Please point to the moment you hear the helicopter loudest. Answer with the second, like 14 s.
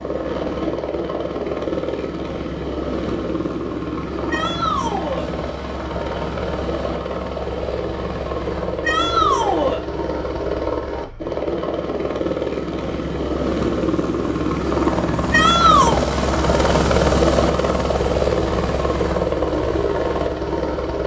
17 s.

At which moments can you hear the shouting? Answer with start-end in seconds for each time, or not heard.
4.3-5.2, 8.8-9.8, 15.3-16.0.